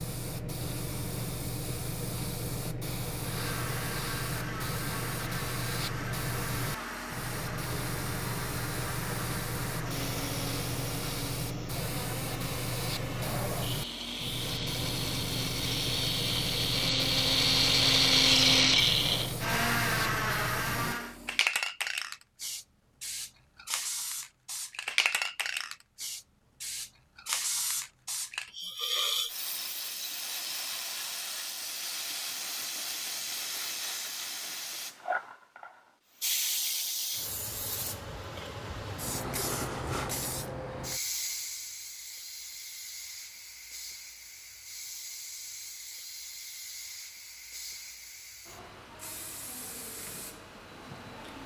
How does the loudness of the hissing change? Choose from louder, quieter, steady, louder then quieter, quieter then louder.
quieter.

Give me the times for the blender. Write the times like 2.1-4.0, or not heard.
3.1-21.2.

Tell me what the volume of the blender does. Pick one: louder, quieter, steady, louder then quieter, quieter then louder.
louder.